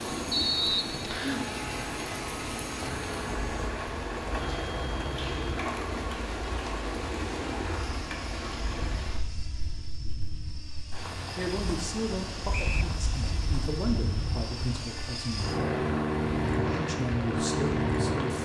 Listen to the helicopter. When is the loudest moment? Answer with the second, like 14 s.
16 s.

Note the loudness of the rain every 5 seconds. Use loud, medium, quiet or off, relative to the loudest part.
loud, loud, medium, medium.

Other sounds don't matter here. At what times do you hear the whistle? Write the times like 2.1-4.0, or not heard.
0.3-1.4, 12.5-12.9.